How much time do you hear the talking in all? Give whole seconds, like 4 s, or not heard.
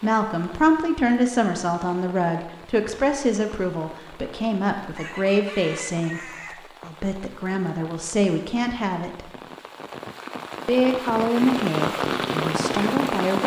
12 s.